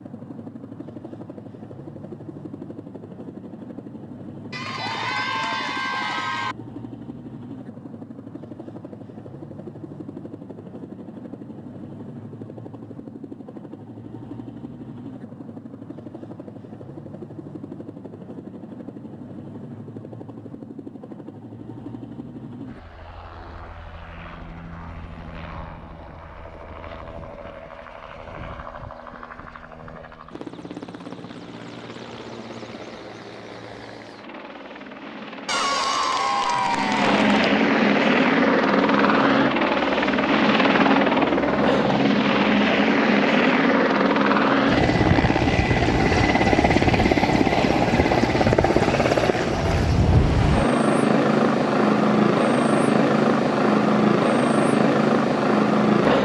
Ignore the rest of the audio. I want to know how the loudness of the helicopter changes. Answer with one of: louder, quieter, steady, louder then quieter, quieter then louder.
louder.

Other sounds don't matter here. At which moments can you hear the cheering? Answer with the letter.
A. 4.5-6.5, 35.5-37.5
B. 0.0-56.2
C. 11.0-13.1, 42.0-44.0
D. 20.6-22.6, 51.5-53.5
A.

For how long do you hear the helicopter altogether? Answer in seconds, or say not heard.
56 s.